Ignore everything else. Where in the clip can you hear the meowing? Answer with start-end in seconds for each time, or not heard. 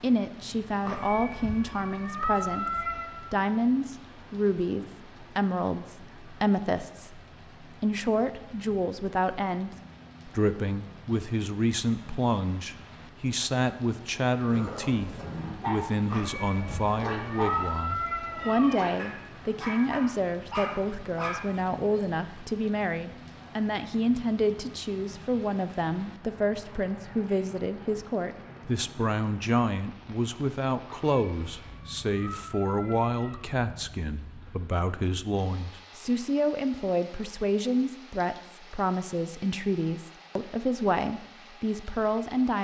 0.8-3.1, 16.1-18.8, 30.9-33.5.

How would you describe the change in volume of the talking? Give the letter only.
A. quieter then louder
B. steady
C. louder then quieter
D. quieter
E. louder
B.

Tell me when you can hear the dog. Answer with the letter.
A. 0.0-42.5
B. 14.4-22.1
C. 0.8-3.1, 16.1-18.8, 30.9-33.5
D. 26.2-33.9
B.